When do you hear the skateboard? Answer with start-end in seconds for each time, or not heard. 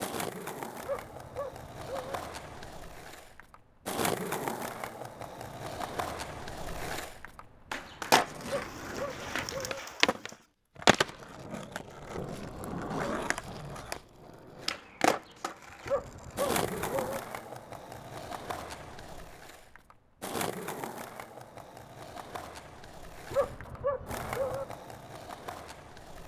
0.0-26.2.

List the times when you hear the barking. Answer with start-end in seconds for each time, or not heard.
0.8-2.2, 8.4-9.8, 15.8-17.2, 23.3-24.6.